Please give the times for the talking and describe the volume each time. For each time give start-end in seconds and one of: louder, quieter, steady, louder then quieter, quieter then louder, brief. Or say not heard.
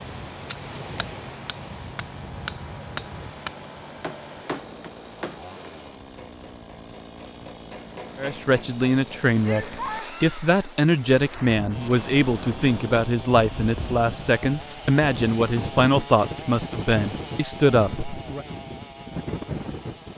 8.2-18.4 steady.